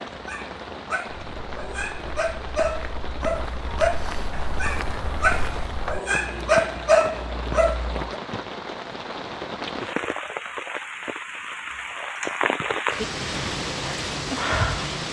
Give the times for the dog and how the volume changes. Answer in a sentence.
The dog can be heard from 0.1 to 8.2 s, getting louder.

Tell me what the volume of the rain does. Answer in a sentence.
The loudness of the rain goes up.